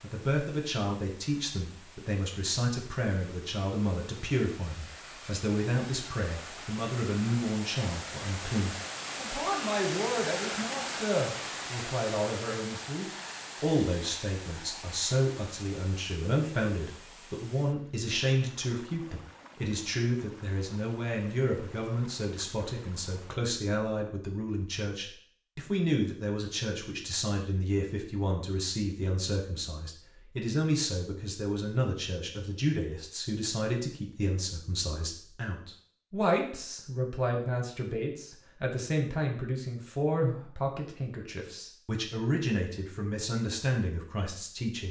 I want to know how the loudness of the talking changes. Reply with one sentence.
The volume of the talking stays about the same.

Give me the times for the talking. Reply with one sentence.
The talking can be heard from 0.0 to 44.8 s.